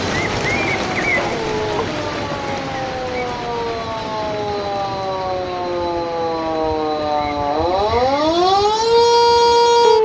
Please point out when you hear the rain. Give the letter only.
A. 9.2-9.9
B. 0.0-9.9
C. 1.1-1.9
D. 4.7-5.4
B.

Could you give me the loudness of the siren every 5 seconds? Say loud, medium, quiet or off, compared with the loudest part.
medium, loud.